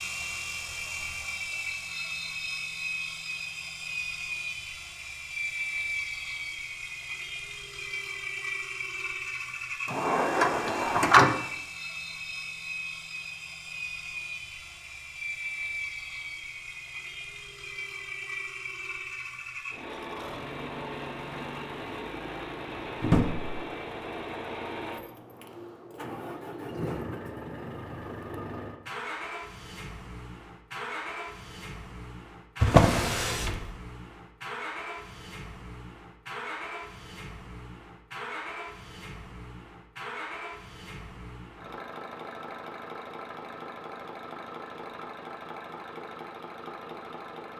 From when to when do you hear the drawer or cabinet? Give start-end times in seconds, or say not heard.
9.8-11.3, 23.0-23.6, 32.6-33.6.